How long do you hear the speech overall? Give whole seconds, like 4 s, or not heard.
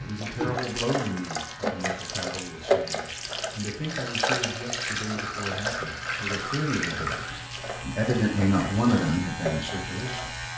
10 s.